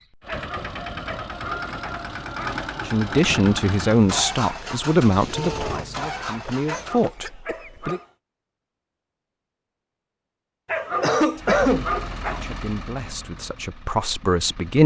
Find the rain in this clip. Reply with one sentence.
You can't hear the rain here.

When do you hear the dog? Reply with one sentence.
You can hear the dog from 0.2 to 2.6 s, from 6.7 to 8.1 s and from 10.7 to 12.6 s.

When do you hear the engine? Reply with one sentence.
You can hear the engine from 0.0 to 7.1 s and from 11.3 to 14.8 s.